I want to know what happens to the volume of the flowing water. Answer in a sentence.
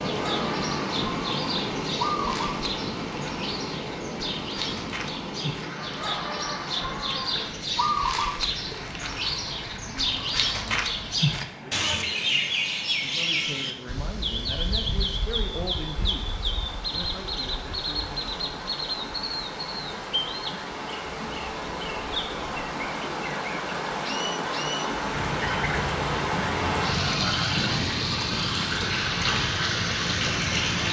The volume of the flowing water goes down, then up.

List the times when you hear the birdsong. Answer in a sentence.
The birdsong can be heard from 0.0 to 30.8 s.